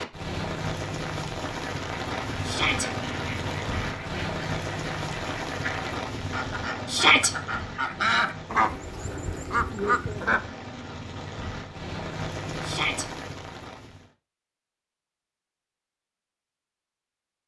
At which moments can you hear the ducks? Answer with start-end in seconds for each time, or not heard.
1.6-10.5.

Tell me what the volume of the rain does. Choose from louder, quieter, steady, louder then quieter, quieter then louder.
quieter then louder.